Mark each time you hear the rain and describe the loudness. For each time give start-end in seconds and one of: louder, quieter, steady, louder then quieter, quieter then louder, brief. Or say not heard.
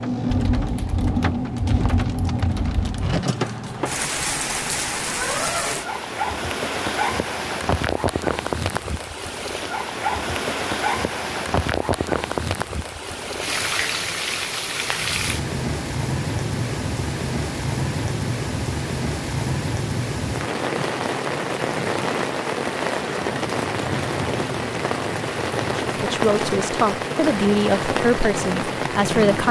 0.0-29.4 steady.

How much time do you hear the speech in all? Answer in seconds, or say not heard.
4 s.